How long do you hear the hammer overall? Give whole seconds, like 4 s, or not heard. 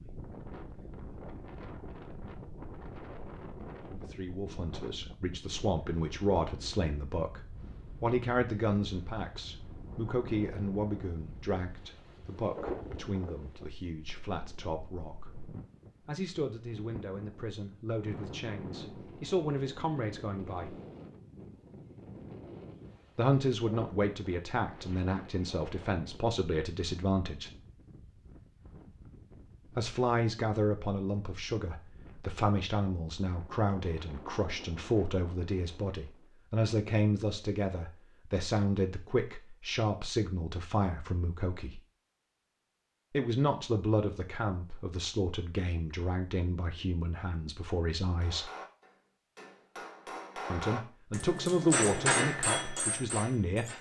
6 s.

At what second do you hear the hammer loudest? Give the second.
52 s.